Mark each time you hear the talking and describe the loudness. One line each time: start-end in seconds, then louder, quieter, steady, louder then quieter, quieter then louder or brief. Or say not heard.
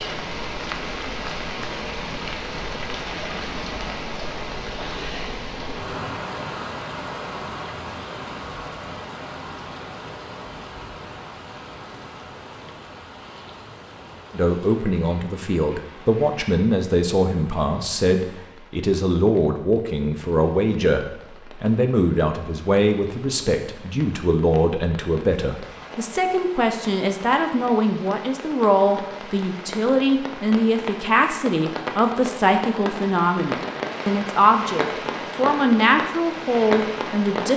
14.3-37.5 steady.